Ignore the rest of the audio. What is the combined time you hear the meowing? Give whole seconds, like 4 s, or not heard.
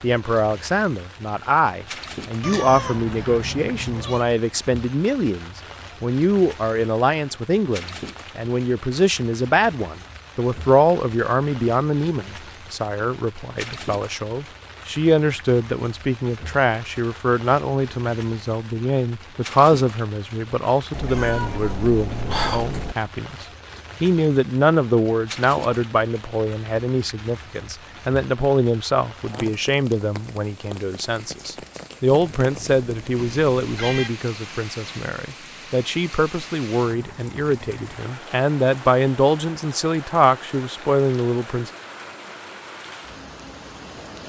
6 s.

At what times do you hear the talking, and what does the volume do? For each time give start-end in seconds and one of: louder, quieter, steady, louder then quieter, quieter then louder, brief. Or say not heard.
0.0-41.7 steady.